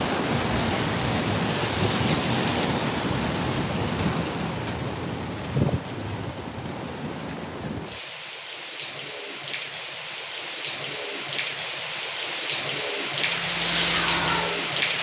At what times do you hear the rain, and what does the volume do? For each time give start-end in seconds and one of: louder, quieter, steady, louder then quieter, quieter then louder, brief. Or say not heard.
0.0-14.9 quieter then louder.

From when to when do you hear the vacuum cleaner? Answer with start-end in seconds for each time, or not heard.
13.2-14.8.